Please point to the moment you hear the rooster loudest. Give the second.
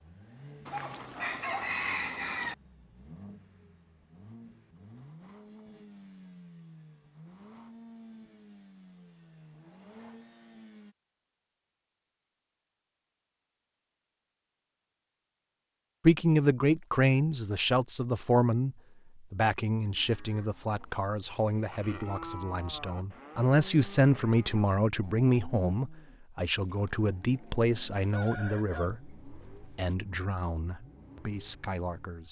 2 s.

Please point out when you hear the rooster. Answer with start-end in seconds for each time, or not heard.
0.7-2.5, 28.0-29.9.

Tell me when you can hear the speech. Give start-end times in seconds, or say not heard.
16.0-32.2.